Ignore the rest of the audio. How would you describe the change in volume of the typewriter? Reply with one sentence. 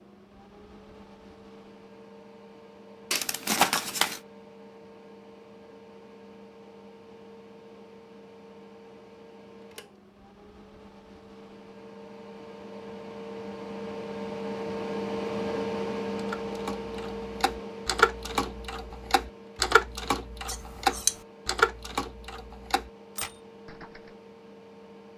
The loudness of the typewriter goes up, then down.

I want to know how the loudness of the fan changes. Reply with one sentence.
The loudness of the fan goes up, then down.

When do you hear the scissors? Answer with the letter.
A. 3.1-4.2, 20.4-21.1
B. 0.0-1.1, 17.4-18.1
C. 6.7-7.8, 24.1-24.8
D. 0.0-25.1
A.